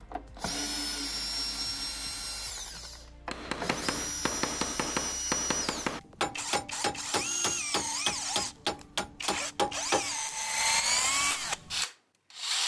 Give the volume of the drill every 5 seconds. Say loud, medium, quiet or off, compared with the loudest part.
medium, medium, loud.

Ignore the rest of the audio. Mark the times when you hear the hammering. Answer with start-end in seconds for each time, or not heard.
3.3-10.2.